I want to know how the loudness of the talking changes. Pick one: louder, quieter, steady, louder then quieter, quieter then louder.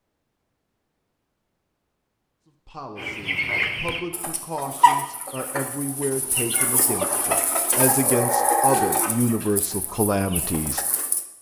louder.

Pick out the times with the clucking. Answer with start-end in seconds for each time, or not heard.
3.0-11.2.